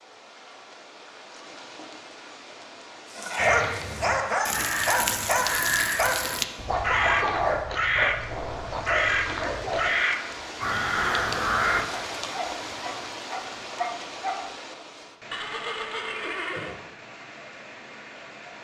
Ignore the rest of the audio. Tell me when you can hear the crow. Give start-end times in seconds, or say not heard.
3.4-11.8.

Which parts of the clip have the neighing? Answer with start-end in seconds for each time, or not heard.
15.3-16.8.